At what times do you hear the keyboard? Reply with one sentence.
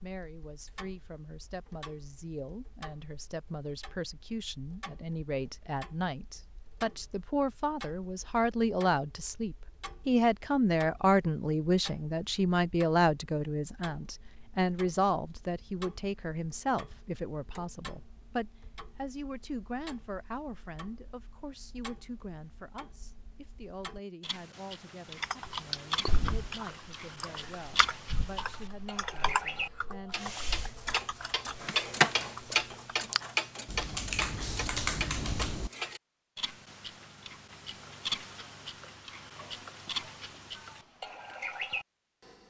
You can hear the keyboard from 25.2 to 35.7 s.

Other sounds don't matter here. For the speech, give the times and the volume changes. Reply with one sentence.
The speech can be heard from 0.0 to 30.4 s, getting louder then quieter.